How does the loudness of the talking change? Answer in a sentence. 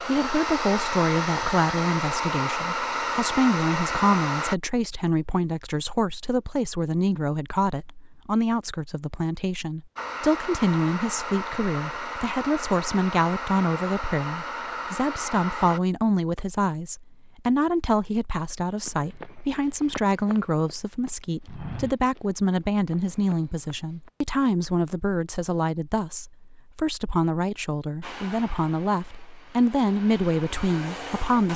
The loudness of the talking stays about the same.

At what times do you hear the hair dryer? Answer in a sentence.
You can hear the hair dryer from 0.0 to 4.5 s, from 9.9 to 15.8 s and from 28.0 to 31.5 s.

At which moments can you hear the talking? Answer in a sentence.
You can hear the talking from 0.0 to 31.5 s.